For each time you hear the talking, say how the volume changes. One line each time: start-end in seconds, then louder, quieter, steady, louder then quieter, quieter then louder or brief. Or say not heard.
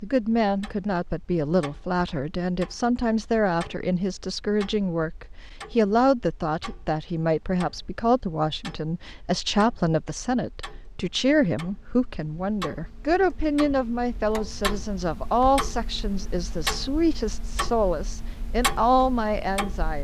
0.0-19.9 steady.